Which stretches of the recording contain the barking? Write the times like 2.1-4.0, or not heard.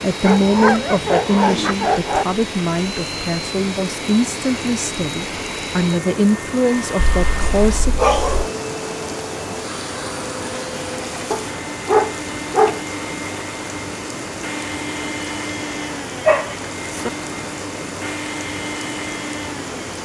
0.2-2.2, 7.2-8.5, 11.3-12.8, 16.2-17.1.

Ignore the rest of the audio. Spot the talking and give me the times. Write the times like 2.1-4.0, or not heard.
0.0-8.0.